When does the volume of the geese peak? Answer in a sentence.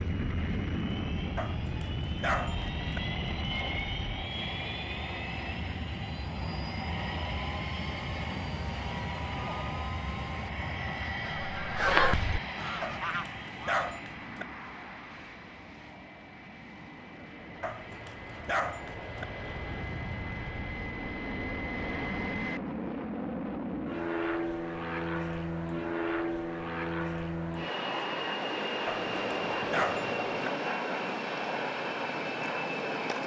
The volume of the geese peaks at 12 seconds.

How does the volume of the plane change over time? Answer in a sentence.
The volume of the plane goes down, then up.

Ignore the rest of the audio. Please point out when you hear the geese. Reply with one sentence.
You can hear the geese from 11.2 to 13.8 s.